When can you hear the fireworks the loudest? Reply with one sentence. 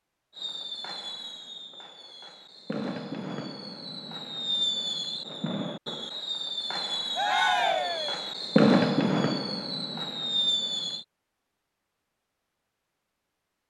The volume of the fireworks peaks at 9 seconds.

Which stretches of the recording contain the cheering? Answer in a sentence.
You can hear the cheering from 7.2 to 8.2 s.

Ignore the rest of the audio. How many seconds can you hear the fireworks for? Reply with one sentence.
You can hear the fireworks for 11 seconds altogether.